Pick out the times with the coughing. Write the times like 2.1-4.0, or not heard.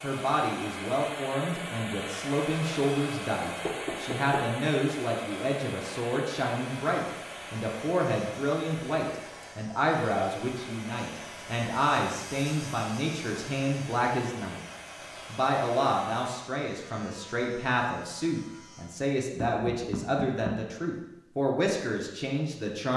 not heard.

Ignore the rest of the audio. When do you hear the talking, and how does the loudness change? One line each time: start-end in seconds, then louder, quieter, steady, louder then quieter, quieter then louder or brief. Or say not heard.
0.0-14.6 steady
15.3-22.9 steady.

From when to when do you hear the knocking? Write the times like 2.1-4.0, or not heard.
3.6-4.5, 19.4-20.6.